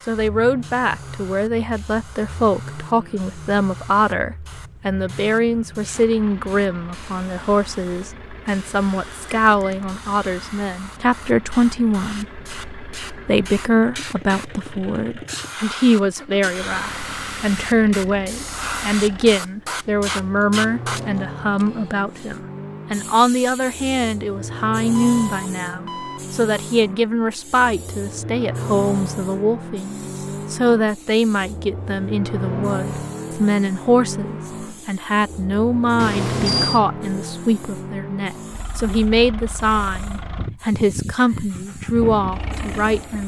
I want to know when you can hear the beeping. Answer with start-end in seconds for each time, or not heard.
9.4-9.8, 24.9-26.2, 36.0-36.8.